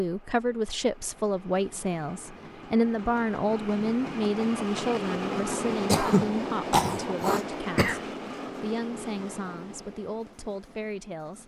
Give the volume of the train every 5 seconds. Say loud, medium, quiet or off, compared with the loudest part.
medium, loud, quiet.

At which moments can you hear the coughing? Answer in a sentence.
You can hear the coughing from 5.8 to 8.0 s.